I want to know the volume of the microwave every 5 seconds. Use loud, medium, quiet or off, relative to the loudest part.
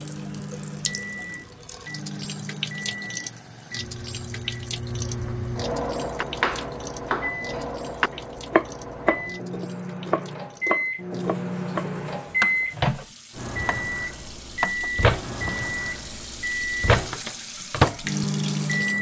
medium, medium, loud, loud.